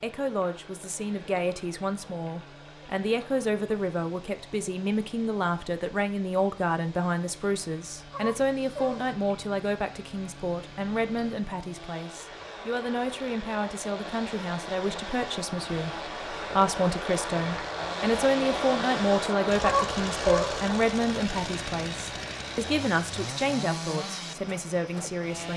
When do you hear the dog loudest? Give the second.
20 s.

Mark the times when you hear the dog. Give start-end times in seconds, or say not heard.
8.1-9.2, 19.6-20.6.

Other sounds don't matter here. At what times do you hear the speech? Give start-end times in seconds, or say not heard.
0.0-25.5.